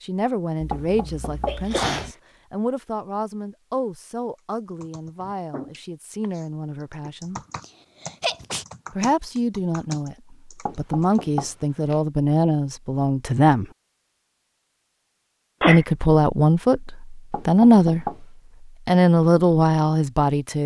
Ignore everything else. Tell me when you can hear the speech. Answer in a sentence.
The speech can be heard from 0.0 to 7.4 s, from 8.9 to 13.7 s, from 15.7 to 18.2 s and from 18.9 to 20.6 s.